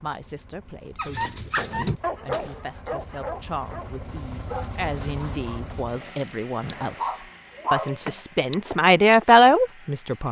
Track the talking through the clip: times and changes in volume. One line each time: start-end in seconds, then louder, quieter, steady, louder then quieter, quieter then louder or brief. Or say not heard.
0.0-10.2 louder.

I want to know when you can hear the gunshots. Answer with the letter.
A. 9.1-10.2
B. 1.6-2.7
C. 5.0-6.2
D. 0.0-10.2
B.